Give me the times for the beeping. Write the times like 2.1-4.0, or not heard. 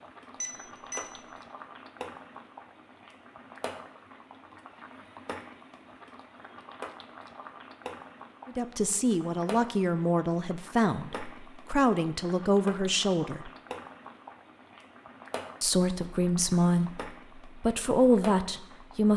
0.4-1.1.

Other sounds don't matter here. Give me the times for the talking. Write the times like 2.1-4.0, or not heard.
8.4-13.5, 15.6-19.1.